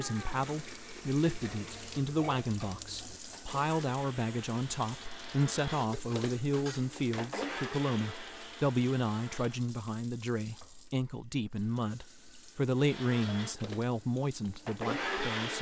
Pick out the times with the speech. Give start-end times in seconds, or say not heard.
0.0-15.5.